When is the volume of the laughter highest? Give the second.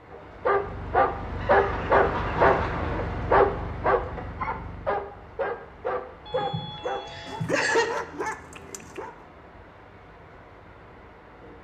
8 s.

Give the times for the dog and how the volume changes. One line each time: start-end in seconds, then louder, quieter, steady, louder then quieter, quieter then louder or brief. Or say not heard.
0.1-9.2 quieter.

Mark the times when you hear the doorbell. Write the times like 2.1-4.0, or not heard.
6.2-7.5.